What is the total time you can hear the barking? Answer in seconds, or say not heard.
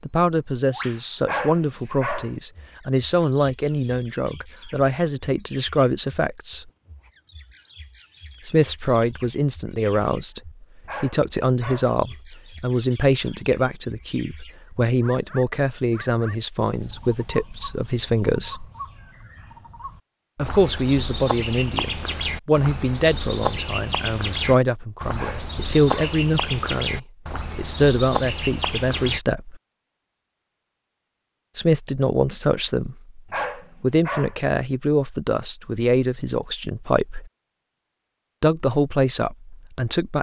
4 s.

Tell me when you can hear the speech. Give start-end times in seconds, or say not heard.
0.0-6.7, 8.4-18.6, 20.4-29.6, 31.6-33.1, 33.8-37.3, 38.4-40.1.